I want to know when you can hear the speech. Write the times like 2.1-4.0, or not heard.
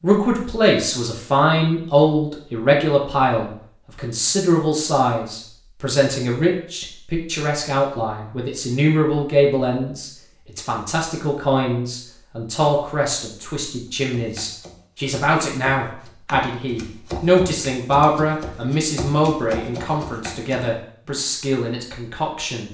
0.0-22.6.